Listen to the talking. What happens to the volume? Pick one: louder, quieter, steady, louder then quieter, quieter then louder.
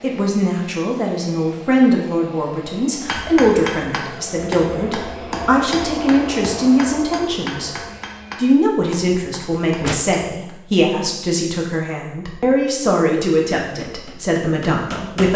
steady.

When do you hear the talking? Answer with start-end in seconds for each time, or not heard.
0.0-7.7, 8.3-15.3.